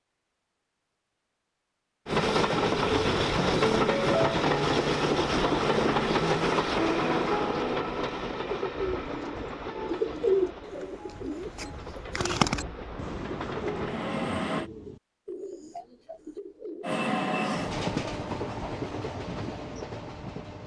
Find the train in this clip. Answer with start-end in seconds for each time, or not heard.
2.0-14.7, 16.8-20.6.